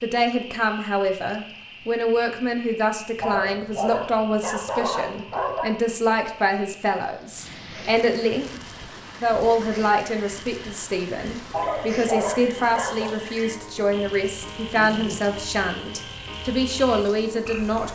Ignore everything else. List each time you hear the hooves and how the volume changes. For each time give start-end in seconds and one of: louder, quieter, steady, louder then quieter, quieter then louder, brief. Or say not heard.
not heard.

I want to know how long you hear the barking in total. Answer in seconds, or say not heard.
4 s.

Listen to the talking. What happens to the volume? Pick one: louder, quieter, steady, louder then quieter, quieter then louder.
steady.